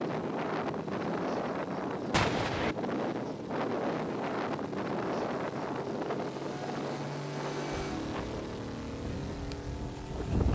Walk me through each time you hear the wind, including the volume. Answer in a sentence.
The wind can be heard from 0.0 to 10.5 s, getting quieter.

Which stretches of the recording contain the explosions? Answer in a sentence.
You can hear the explosions from 2.1 to 2.8 s.